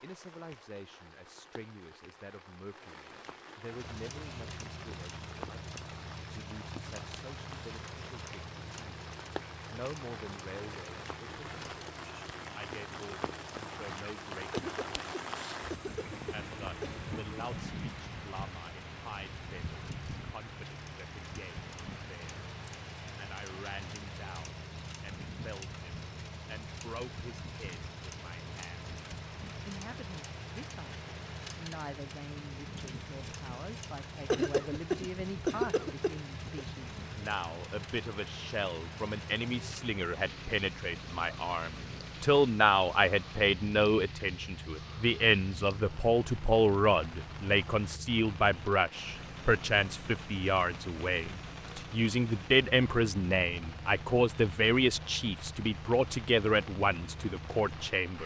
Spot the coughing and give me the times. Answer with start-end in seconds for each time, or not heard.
14.5-17.0, 34.3-36.6.